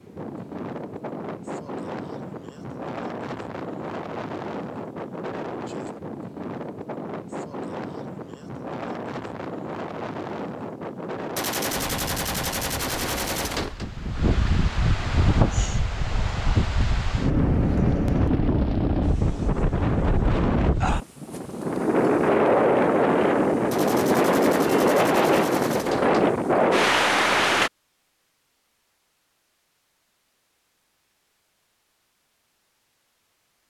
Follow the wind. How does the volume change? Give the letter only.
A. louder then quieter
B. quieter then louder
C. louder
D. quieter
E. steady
C.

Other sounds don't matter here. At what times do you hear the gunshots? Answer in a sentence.
The gunshots can be heard from 11.3 to 13.9 s and from 23.7 to 26.4 s.